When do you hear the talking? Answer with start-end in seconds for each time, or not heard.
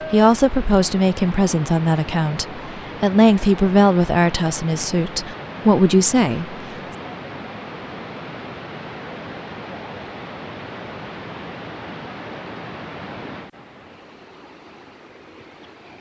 0.1-6.5.